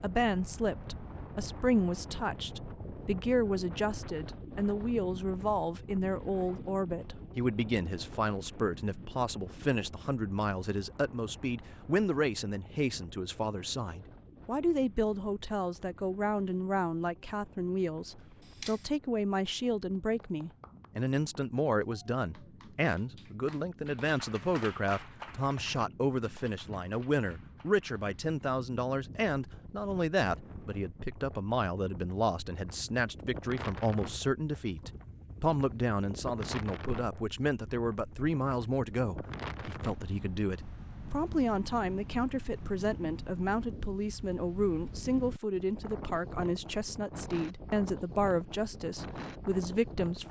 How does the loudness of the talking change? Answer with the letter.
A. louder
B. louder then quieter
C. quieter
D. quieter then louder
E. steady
E.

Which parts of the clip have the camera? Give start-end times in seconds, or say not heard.
18.1-18.9.